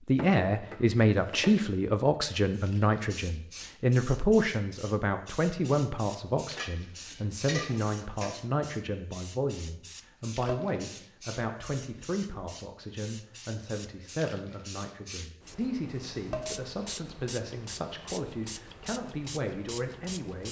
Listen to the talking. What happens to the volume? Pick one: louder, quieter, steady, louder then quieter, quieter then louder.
quieter.